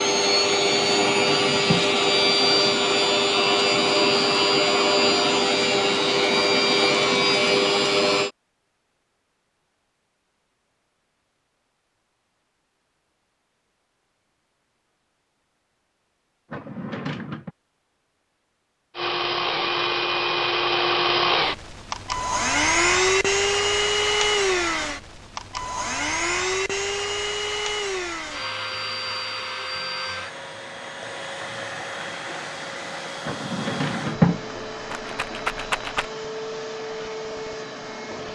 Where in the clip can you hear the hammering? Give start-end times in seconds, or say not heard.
not heard.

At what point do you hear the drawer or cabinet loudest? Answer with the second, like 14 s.
34 s.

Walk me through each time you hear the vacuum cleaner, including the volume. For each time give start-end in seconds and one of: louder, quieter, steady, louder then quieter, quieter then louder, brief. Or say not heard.
0.0-8.3 steady
18.9-38.3 quieter.